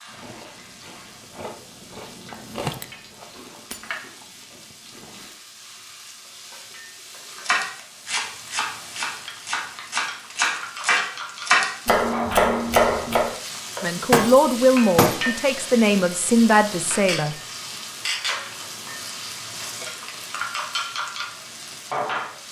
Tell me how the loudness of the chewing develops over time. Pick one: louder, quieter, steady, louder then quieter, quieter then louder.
louder then quieter.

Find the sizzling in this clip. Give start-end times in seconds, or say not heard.
0.0-22.4.